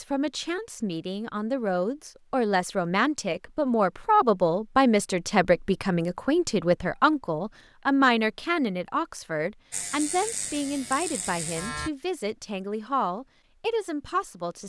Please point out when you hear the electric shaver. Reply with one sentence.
You can hear the electric shaver from 9.7 to 11.9 s.